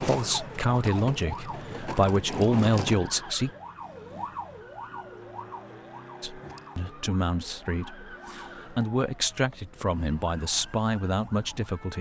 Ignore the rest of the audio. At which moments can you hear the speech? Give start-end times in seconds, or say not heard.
0.0-3.5, 6.2-11.9.